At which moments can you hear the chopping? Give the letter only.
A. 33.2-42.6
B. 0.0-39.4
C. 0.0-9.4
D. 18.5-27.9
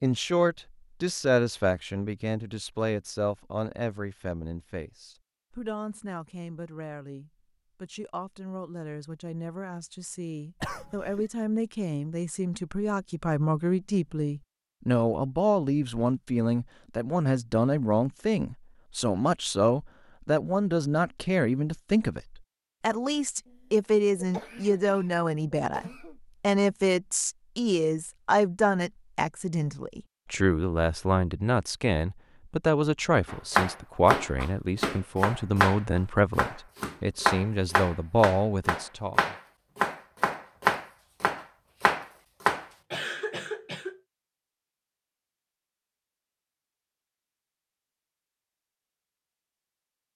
A.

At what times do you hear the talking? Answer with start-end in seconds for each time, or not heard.
0.0-39.4.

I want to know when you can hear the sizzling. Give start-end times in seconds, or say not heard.
not heard.